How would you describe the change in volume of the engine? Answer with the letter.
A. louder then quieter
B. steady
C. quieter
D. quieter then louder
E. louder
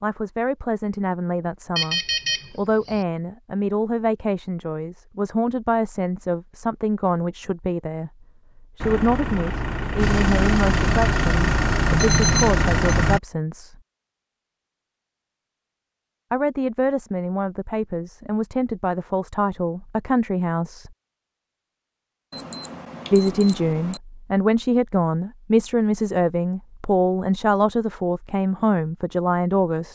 E.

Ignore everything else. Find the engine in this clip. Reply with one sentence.
You can hear the engine from 8.8 to 13.2 s.